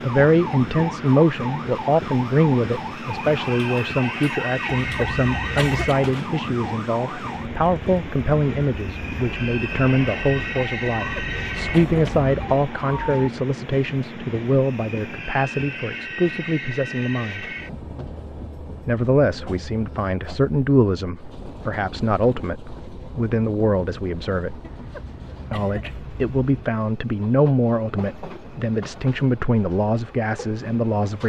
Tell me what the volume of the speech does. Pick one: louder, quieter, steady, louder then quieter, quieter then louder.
steady.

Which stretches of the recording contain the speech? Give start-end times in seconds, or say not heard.
0.0-17.4, 18.9-24.6, 25.5-31.2.